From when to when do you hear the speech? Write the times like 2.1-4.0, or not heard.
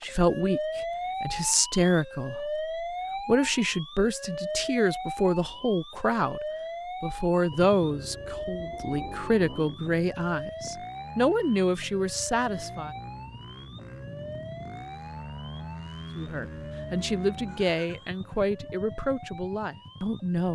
0.0-6.4, 7.0-12.9, 16.1-20.5.